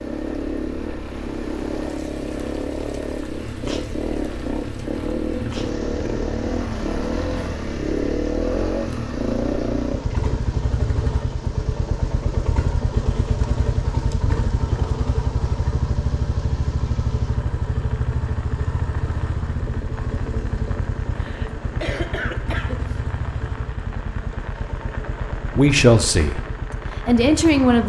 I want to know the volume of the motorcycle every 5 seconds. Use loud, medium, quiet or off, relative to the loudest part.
loud, loud, loud, loud, medium, medium.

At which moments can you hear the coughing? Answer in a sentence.
You can hear the coughing from 21.1 to 22.9 s.